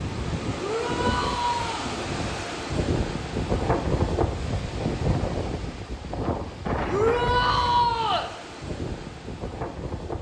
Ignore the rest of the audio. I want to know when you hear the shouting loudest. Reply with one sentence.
The loudest moment of the shouting is at 8 seconds.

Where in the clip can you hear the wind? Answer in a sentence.
The wind can be heard from 0.0 to 10.1 s.